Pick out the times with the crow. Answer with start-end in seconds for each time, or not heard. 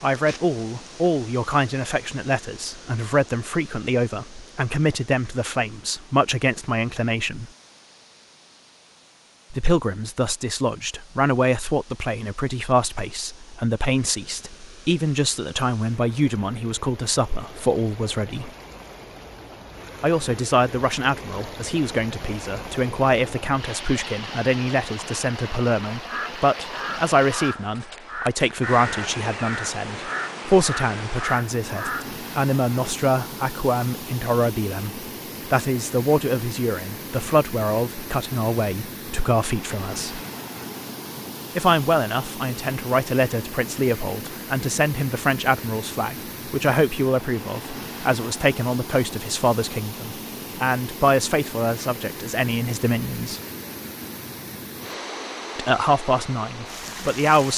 26.1-32.1.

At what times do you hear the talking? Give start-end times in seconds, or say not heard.
0.0-7.5, 9.5-18.5, 20.0-40.2, 41.5-53.4, 55.5-57.5.